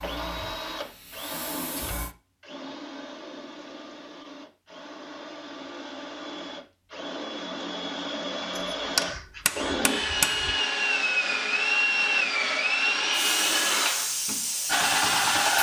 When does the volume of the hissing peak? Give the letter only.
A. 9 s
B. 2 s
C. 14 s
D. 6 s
C.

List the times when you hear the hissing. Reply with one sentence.
The hissing can be heard from 0.0 to 2.1 s and from 13.1 to 15.5 s.